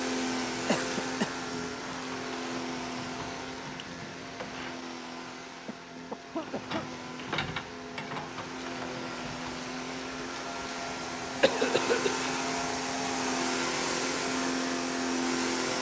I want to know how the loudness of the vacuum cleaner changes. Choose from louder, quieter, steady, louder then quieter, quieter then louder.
quieter then louder.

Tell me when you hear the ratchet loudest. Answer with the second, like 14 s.
7 s.